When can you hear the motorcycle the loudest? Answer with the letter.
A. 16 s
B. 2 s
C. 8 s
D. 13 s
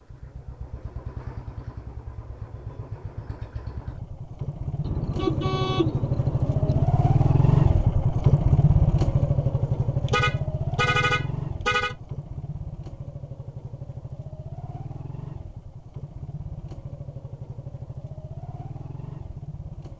C.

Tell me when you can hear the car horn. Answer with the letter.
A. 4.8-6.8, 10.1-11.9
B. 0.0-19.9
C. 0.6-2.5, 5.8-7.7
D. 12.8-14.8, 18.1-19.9
A.